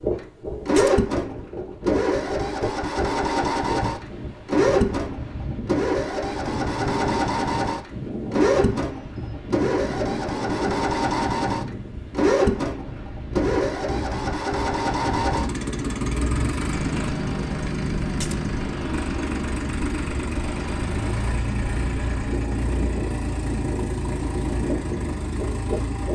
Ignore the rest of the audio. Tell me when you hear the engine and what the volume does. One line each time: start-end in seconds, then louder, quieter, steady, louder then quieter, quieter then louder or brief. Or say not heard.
0.1-26.1 quieter.